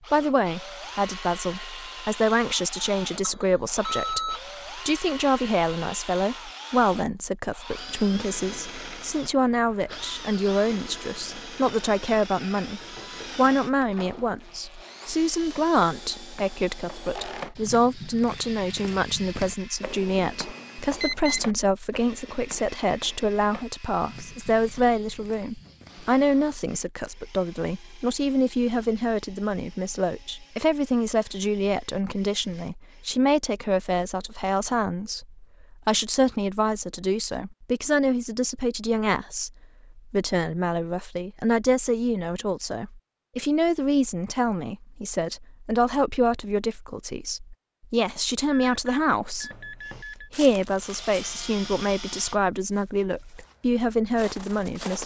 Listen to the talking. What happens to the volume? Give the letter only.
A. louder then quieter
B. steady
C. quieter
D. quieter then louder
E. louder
B.